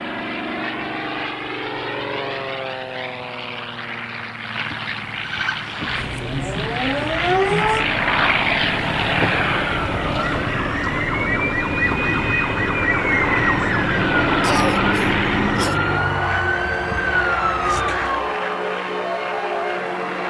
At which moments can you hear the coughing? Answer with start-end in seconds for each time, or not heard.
14.4-15.8.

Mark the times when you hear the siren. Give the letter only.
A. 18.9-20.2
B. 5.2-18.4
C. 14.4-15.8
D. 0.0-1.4
B.